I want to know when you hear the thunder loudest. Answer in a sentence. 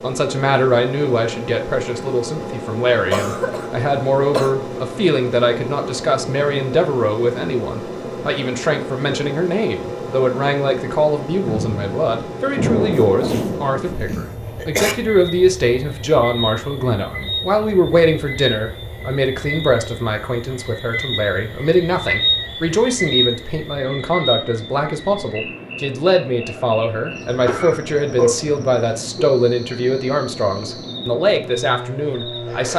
The loudest moment of the thunder is at 13 seconds.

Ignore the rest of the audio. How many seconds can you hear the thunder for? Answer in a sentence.
You can hear the thunder for 3 seconds altogether.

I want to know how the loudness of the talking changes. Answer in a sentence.
The loudness of the talking stays about the same.